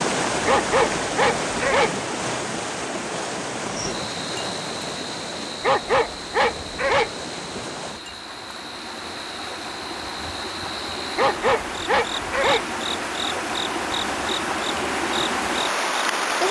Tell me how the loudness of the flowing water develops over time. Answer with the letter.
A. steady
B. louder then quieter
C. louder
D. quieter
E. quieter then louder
E.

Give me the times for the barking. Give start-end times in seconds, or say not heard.
0.5-1.9, 5.6-7.2, 11.2-12.7.